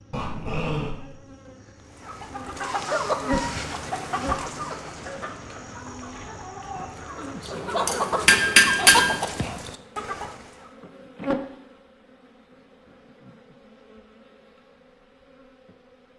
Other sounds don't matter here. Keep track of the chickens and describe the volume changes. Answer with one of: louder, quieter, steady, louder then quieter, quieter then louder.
quieter then louder.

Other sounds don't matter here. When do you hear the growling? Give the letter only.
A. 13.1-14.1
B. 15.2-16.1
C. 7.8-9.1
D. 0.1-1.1
D.